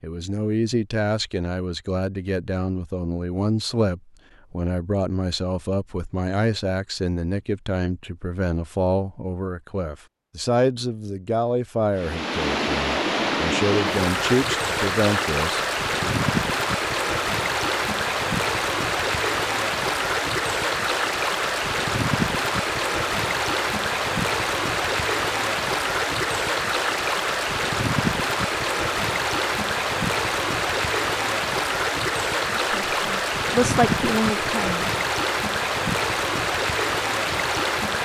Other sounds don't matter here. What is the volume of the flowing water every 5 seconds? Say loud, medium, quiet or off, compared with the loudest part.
off, off, loud, loud, loud, loud, loud, loud.